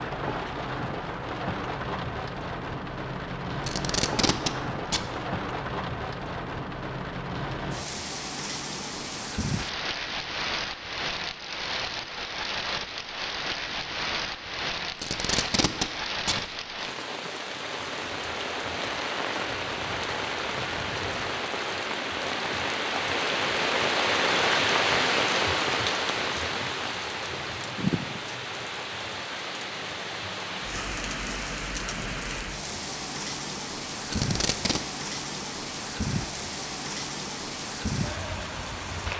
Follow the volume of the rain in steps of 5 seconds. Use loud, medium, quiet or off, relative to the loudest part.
medium, medium, medium, medium, loud, loud, medium, medium.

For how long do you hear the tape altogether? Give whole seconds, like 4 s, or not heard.
4 s.